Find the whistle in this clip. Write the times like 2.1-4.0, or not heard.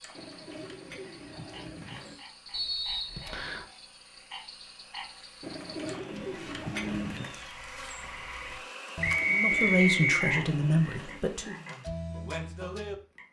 2.5-3.6, 9.0-10.3.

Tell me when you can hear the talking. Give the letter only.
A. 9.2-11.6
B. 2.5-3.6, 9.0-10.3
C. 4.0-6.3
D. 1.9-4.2
A.